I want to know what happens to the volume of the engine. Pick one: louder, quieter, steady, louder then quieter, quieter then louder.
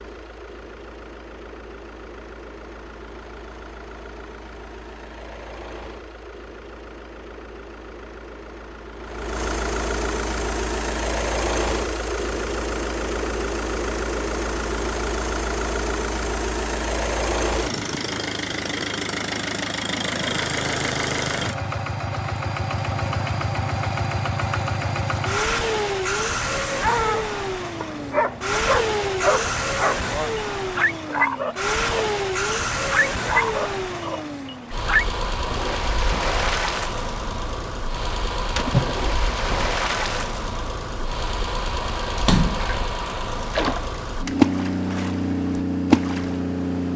louder.